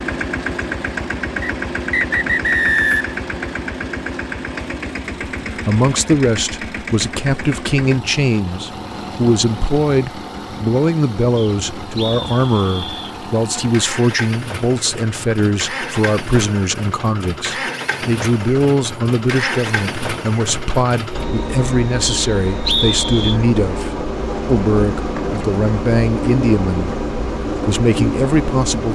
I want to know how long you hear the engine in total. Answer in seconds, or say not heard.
29 s.